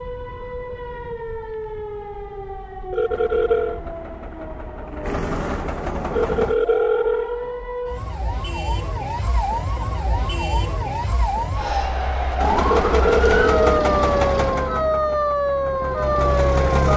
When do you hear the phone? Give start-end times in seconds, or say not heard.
2.9-3.8, 6.1-7.5, 12.7-13.8.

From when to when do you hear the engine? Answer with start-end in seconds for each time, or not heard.
3.0-6.6, 12.3-16.9.